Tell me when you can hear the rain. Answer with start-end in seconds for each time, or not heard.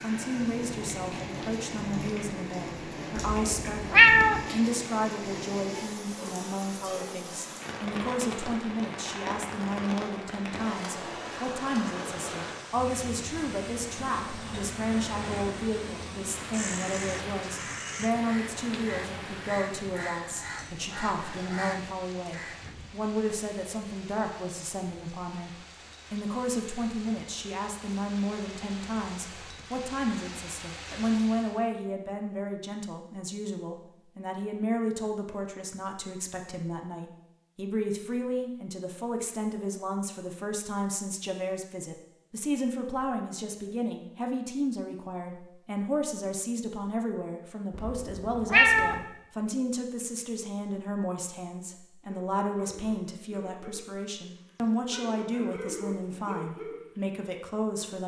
0.0-31.6.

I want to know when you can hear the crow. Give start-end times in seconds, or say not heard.
16.4-22.8.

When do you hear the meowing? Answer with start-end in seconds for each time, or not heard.
3.1-4.5, 47.8-49.0.